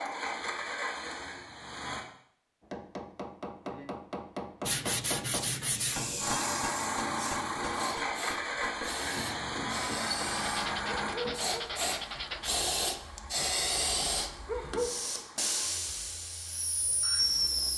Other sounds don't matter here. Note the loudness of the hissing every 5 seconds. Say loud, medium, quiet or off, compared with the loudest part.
off, medium, loud, loud.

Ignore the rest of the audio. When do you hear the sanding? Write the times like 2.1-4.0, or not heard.
4.7-6.3, 10.4-12.7.